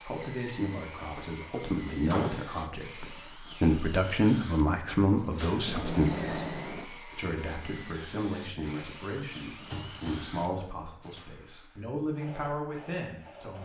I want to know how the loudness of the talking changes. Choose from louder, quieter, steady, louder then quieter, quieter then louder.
louder then quieter.